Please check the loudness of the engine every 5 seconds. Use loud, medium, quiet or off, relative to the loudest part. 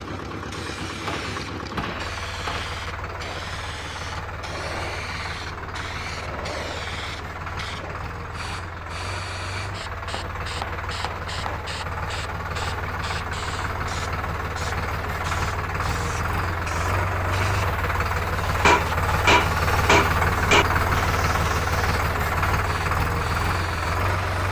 medium, medium, medium, loud, loud.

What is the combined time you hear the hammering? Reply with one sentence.
You can hear the hammering for 5 seconds altogether.